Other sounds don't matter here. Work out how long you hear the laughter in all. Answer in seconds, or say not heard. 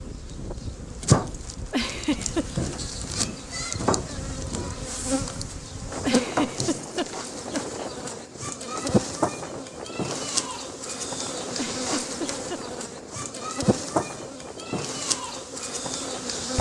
4 s.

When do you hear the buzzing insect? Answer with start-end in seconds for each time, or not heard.
0.0-16.5.